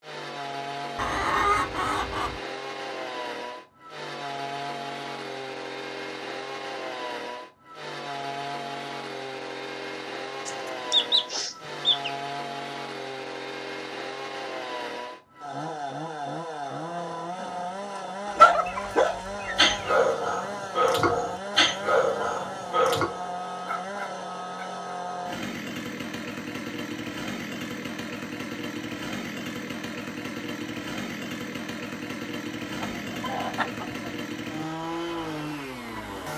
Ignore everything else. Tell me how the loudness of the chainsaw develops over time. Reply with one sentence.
The volume of the chainsaw stays about the same.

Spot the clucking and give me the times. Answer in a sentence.
You can hear the clucking from 0.9 to 2.4 s, from 10.4 to 12.1 s, from 18.2 to 19.9 s and from 32.7 to 34.1 s.